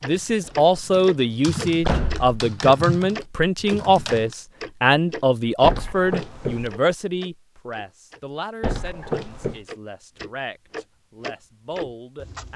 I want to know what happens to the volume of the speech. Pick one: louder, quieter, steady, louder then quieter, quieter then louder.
quieter.